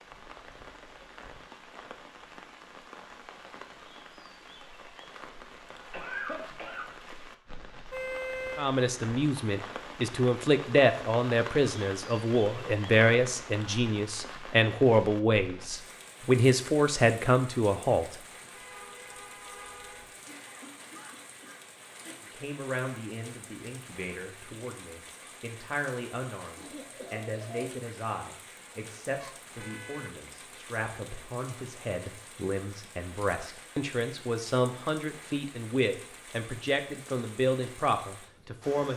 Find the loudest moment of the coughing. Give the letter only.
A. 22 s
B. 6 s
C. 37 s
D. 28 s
B.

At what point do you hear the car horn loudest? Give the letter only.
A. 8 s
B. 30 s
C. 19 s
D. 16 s
A.